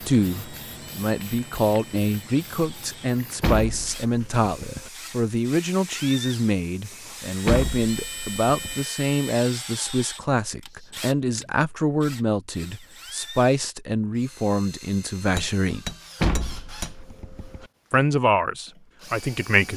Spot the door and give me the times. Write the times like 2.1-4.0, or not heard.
3.4-4.9, 7.5-8.8, 16.2-17.6.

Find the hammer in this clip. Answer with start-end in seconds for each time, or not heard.
15.3-17.1.